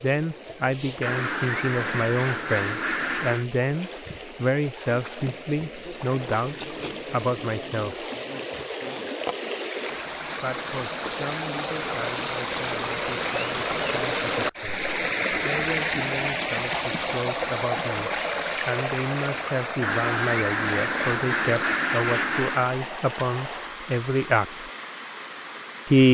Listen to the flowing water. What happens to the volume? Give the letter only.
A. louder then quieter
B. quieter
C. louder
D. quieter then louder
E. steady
A.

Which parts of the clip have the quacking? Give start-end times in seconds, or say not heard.
1.0-3.5, 19.8-22.6.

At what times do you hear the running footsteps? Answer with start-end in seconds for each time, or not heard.
not heard.